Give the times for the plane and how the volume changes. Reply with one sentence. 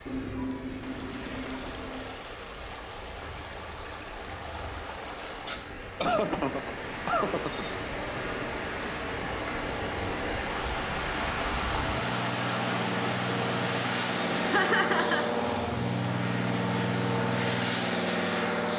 You can hear the plane from 0.0 to 18.7 s, getting louder.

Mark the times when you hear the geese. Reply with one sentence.
The geese can be heard from 0.1 to 2.1 s.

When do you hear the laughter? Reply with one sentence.
You can hear the laughter from 5.5 to 7.7 s and from 14.4 to 15.2 s.